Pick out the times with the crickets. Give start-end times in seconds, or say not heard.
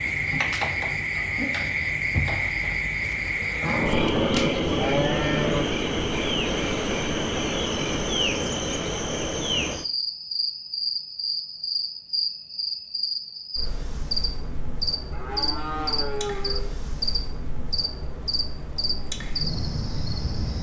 0.0-20.5.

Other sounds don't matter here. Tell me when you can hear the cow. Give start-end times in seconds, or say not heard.
3.6-5.7, 15.1-16.8.